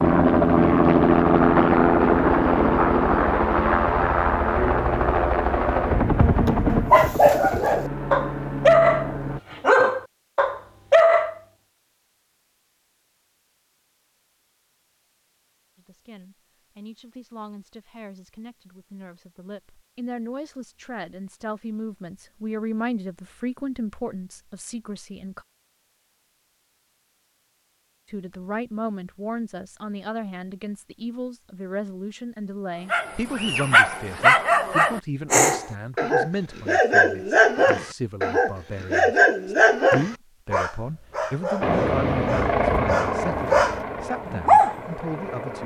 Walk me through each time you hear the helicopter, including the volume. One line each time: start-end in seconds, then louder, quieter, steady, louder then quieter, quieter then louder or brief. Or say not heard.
0.0-9.4 quieter
41.6-45.6 quieter.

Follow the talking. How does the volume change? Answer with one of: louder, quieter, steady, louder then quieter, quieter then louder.
louder.